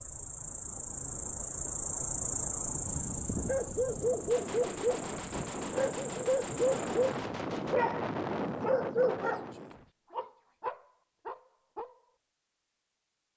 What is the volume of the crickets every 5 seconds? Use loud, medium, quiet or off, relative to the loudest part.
loud, medium, off.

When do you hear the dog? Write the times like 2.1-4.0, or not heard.
2.9-12.0.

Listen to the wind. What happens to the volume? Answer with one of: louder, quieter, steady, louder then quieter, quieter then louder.
louder.